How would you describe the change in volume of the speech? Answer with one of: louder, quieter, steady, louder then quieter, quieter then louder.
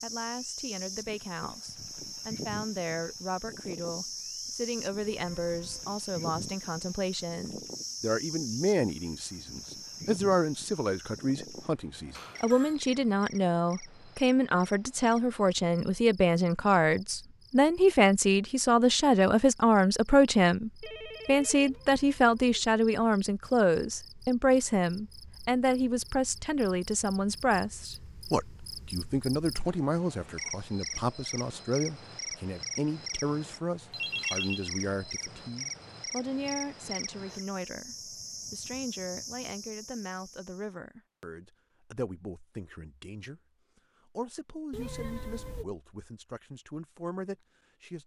louder then quieter.